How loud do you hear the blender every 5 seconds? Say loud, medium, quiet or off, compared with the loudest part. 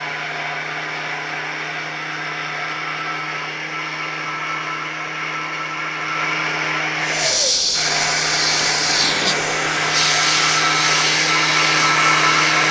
medium, medium, loud.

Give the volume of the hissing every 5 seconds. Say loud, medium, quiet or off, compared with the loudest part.
off, loud, loud.